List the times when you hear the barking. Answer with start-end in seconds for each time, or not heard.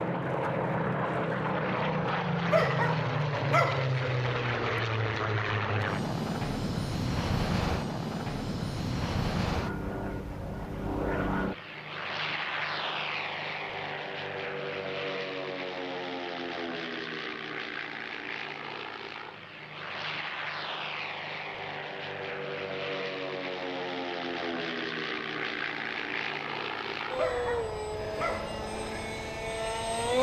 2.5-3.9, 27.1-28.6.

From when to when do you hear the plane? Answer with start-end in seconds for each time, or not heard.
0.0-30.1.